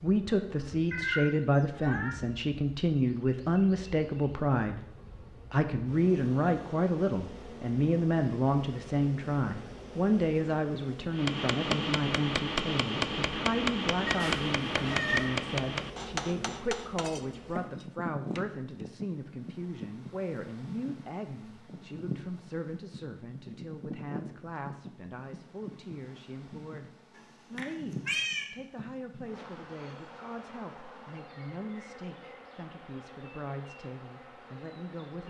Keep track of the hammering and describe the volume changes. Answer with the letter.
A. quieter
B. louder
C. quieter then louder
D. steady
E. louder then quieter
A.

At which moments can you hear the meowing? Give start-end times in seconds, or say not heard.
0.9-2.2, 14.1-15.3, 27.1-28.4.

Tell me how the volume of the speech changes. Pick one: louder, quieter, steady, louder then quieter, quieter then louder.
quieter.